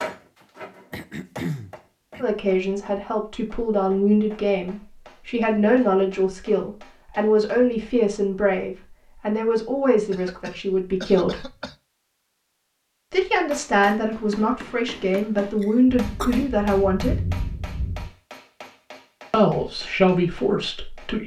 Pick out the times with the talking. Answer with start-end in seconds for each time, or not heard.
2.2-11.4, 13.1-17.4, 19.3-21.2.